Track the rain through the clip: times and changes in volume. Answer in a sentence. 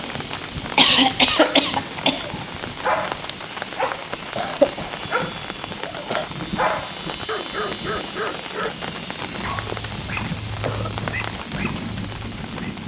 You can hear the rain from 0.0 to 12.8 s, at a steady volume.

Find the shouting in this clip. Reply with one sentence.
You can't hear the shouting here.